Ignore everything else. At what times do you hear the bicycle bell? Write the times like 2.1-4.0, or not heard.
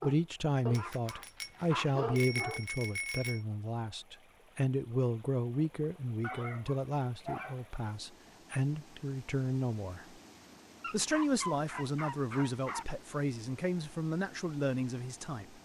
0.7-3.4.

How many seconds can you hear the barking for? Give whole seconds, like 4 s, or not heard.
6 s.